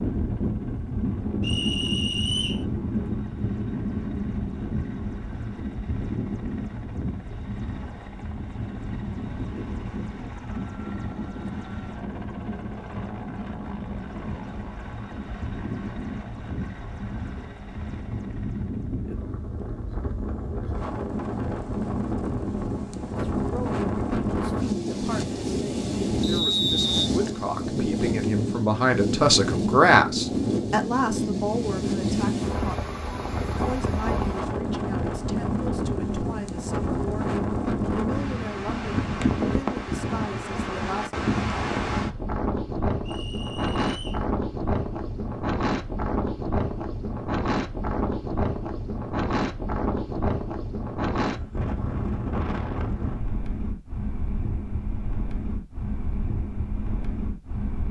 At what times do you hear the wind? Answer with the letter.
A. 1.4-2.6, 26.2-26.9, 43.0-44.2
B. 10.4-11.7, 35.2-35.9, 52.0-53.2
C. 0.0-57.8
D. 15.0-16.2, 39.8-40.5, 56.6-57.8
C.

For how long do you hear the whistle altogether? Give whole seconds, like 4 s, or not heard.
3 s.